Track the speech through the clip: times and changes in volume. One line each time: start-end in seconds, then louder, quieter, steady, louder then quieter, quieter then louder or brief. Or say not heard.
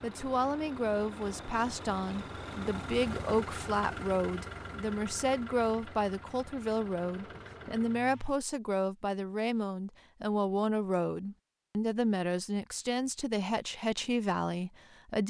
0.0-15.2 steady.